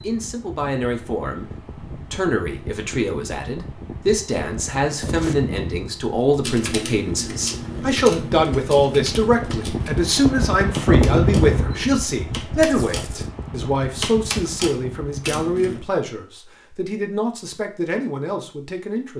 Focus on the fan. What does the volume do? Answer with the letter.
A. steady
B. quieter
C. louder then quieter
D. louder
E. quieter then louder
C.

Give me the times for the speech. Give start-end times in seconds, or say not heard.
0.0-19.1.